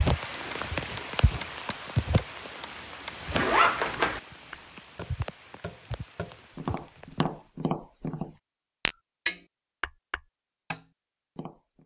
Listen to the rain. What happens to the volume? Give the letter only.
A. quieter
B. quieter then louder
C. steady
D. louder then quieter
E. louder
A.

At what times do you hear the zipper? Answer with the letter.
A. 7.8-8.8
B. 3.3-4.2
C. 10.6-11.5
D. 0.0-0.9
B.